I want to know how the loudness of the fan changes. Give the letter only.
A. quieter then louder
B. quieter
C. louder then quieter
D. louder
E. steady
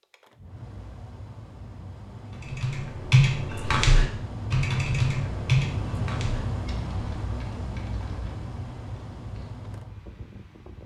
C.